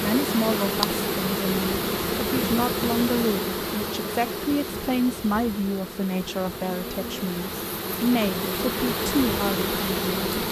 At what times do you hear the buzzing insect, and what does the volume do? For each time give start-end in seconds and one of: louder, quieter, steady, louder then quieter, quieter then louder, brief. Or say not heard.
0.0-10.4 quieter then louder.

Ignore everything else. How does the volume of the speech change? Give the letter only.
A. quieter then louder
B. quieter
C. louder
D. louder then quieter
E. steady
E.